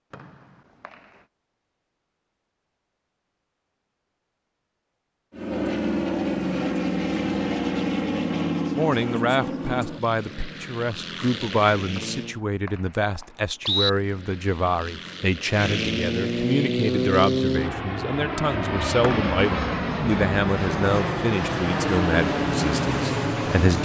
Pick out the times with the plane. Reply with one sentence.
You can hear the plane from 5.3 to 12.4 s and from 13.8 to 23.7 s.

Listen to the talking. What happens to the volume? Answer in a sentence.
The volume of the talking stays about the same.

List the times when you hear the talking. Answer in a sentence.
The talking can be heard from 8.8 to 23.7 s.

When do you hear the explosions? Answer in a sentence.
You can't hear the explosions here.